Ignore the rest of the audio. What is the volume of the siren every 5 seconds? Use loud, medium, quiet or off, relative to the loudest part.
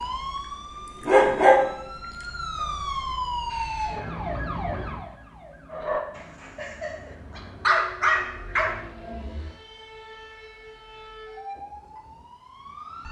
loud, quiet, medium.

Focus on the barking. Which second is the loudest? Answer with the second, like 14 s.
1 s.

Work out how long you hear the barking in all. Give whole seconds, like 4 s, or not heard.
6 s.